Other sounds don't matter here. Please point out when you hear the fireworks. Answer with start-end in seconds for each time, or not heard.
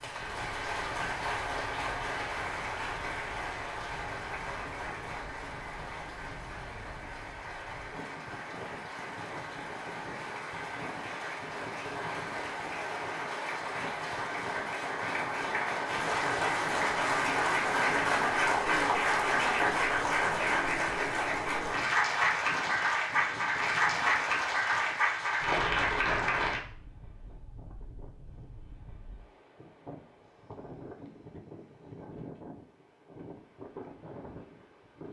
not heard.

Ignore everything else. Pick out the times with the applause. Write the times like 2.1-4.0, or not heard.
0.0-26.6.